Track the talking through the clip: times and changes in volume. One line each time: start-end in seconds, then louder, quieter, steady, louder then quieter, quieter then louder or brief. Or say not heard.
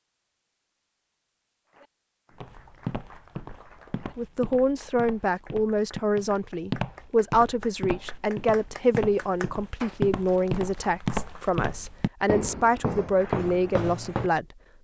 4.2-14.4 steady.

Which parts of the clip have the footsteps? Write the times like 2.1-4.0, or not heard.
2.4-14.3.